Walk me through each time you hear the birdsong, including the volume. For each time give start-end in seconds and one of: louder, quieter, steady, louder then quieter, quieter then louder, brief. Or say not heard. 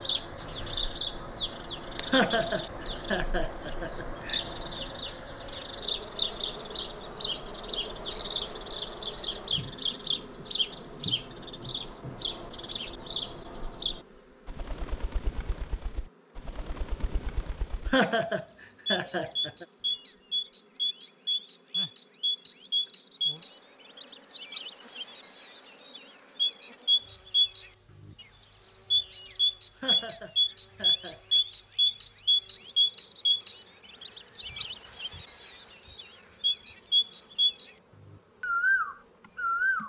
0.0-39.8 louder.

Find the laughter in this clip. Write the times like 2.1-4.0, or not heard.
2.0-4.4, 17.9-19.6, 29.8-31.4.